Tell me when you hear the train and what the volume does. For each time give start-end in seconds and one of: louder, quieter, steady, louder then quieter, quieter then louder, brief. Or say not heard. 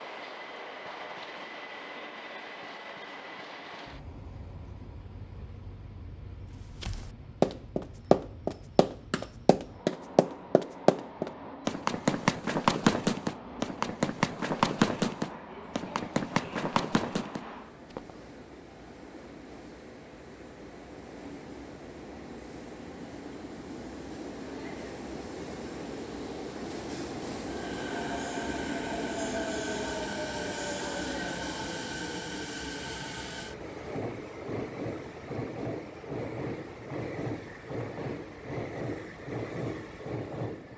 0.0-40.7 louder.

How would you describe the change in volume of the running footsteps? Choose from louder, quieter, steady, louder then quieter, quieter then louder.
quieter.